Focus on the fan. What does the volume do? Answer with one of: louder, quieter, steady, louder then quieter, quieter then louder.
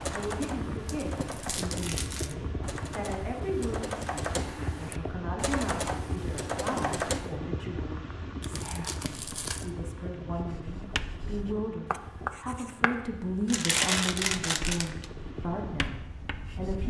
quieter.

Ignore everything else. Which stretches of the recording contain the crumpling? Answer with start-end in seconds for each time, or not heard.
0.8-2.4, 8.4-9.7, 13.4-15.1.